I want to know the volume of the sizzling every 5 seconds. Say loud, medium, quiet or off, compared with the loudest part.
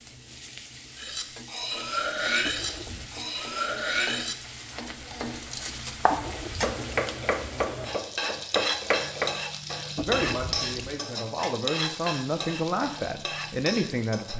medium, loud, loud.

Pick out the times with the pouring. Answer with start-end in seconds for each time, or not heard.
2.4-3.2, 6.1-6.8, 9.9-11.0.